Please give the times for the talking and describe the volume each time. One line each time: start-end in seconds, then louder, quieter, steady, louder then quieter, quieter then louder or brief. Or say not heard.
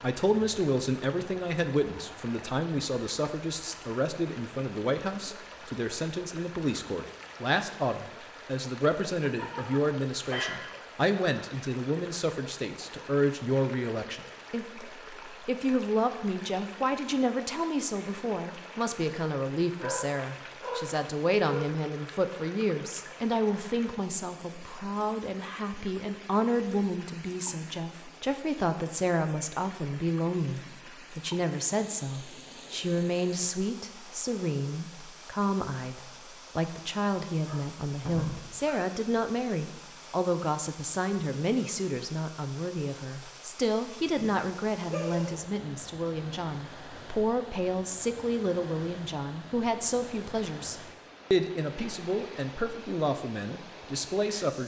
0.0-54.6 steady.